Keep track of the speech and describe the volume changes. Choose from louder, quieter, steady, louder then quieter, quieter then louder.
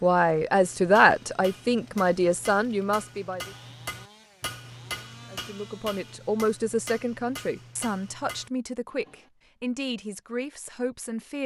quieter.